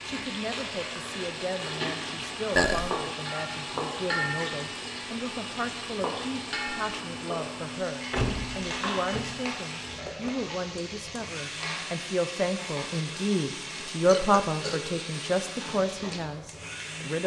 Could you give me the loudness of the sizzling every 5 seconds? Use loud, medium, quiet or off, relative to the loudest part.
loud, loud, medium, medium.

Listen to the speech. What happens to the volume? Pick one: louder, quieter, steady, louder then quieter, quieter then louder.
louder.